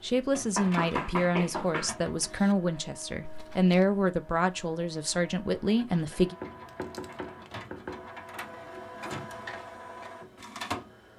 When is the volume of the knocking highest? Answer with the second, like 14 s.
1 s.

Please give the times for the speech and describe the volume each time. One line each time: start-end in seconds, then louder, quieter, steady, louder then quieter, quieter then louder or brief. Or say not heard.
0.0-6.3 steady.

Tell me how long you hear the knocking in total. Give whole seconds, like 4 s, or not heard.
4 s.